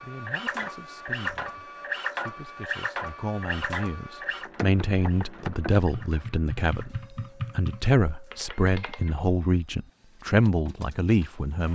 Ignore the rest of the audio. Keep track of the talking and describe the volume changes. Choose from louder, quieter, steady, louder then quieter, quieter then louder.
louder.